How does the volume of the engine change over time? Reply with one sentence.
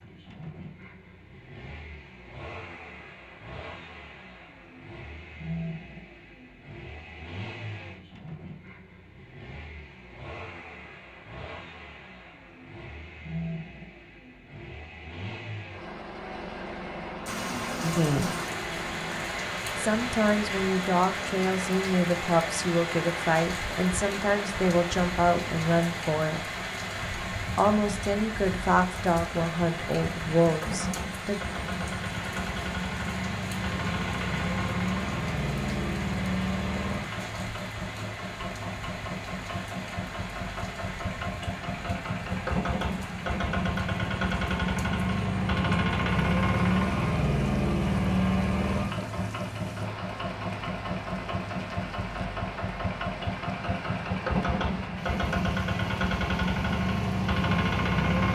The volume of the engine goes up.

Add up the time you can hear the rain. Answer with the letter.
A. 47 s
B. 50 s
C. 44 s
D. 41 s
D.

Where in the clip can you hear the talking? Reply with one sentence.
You can hear the talking from 17.8 to 18.4 s, from 19.8 to 26.5 s and from 27.6 to 31.4 s.